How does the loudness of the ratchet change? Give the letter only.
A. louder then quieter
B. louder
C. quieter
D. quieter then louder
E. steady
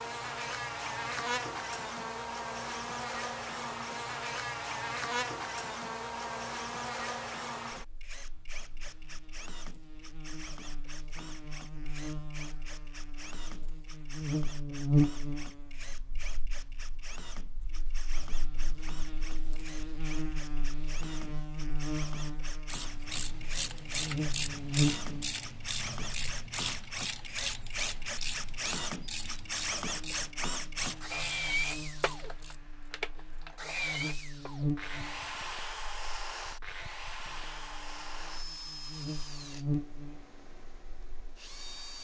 C.